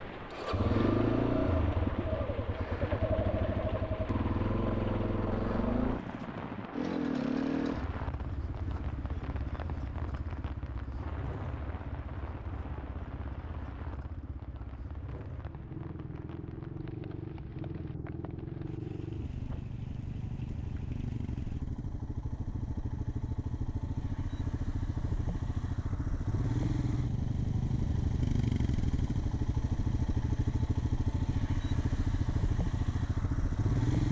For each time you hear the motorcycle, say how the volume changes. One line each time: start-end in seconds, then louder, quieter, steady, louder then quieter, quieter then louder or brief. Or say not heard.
0.0-34.0 quieter then louder.